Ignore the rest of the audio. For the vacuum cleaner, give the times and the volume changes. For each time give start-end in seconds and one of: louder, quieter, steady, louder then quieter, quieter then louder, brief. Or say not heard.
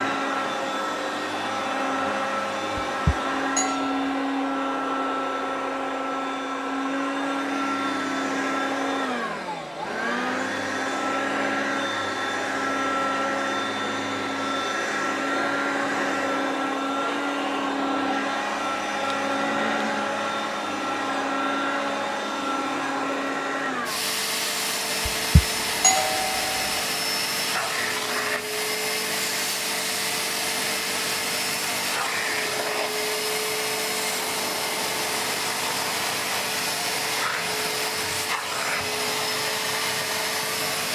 0.0-40.8 steady.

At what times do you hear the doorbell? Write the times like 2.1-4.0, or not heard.
2.8-4.1, 25.1-26.8.